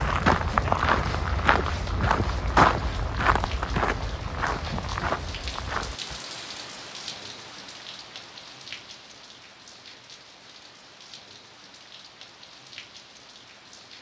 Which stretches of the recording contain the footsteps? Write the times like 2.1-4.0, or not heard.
0.0-6.2.